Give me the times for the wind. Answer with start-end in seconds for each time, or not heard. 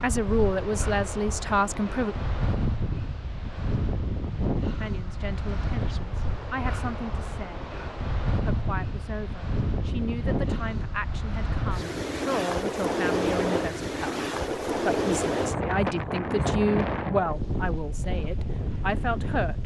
0.0-19.6.